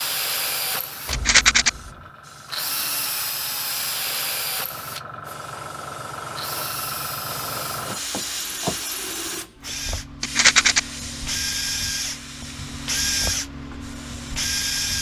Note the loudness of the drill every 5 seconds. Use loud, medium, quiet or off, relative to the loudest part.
loud, medium, loud.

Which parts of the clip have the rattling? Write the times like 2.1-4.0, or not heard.
1.1-1.7, 10.2-10.8.